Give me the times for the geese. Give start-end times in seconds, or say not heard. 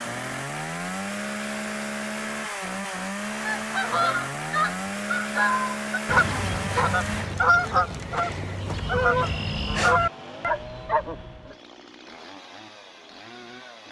3.4-11.6.